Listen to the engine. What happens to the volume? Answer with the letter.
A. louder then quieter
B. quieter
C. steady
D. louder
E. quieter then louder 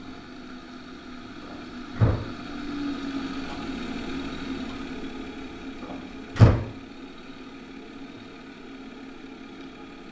A.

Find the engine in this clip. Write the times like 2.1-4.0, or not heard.
0.0-10.0.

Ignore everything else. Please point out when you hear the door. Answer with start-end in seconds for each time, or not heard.
1.5-2.1, 5.9-6.5.